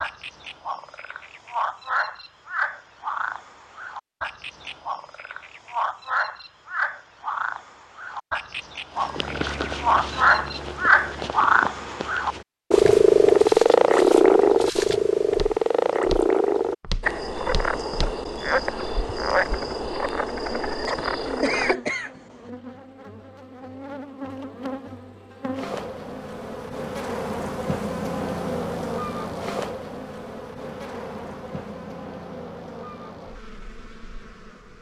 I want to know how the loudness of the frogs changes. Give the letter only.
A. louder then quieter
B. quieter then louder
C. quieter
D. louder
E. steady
A.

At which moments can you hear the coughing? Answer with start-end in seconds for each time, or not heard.
20.9-22.5.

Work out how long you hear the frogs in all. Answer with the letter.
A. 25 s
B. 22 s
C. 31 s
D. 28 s
B.